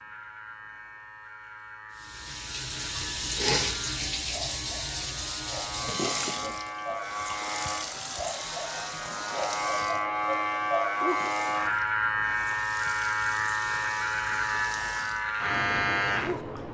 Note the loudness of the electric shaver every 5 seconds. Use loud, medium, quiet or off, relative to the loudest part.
quiet, medium, loud, loud.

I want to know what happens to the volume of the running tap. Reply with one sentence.
The loudness of the running tap goes down.